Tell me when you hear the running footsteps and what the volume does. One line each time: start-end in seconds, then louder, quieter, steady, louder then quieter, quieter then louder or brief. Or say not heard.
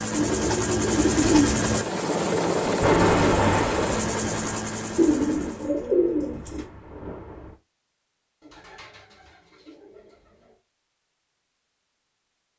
not heard.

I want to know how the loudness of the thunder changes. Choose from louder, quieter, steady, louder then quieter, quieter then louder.
quieter.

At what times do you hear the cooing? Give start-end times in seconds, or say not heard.
0.1-1.9, 5.0-6.7, 8.4-10.6.